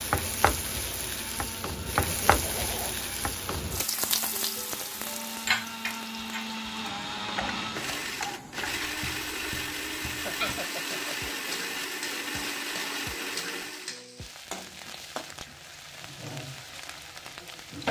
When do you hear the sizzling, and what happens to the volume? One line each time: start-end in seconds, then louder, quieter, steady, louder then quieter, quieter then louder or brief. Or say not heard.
0.0-17.8 quieter.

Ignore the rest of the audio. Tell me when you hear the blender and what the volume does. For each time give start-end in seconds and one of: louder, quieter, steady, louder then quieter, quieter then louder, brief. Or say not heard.
0.1-14.0 louder.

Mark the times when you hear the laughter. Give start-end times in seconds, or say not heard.
2.0-3.0, 10.2-11.3.